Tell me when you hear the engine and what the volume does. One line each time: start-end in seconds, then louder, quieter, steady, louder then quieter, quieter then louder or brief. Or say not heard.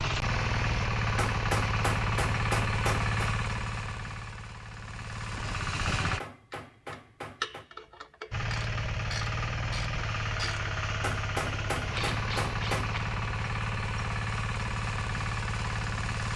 0.0-6.2 quieter
8.3-16.3 steady.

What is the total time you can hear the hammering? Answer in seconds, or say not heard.
6 s.